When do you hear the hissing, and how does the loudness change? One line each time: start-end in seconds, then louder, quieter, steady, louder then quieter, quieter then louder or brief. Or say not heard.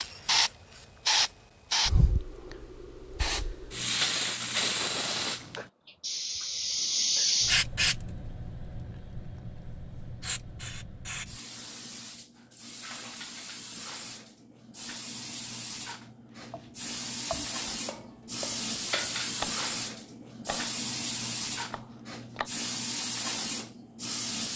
0.0-24.5 quieter then louder.